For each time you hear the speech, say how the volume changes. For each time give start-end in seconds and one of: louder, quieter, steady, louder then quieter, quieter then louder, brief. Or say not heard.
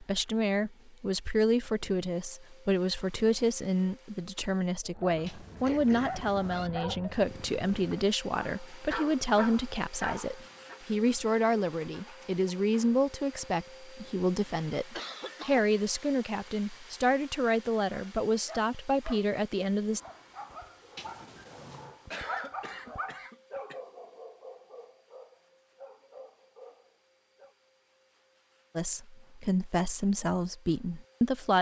0.0-20.0 steady
28.8-31.5 brief.